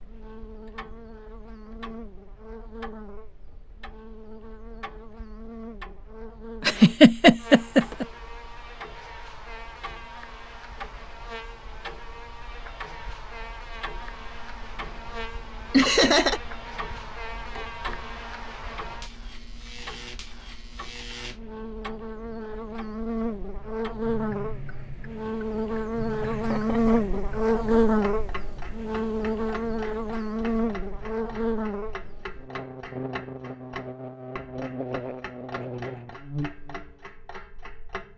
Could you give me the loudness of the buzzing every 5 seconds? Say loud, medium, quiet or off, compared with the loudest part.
quiet, quiet, quiet, quiet, medium, loud, medium, medium.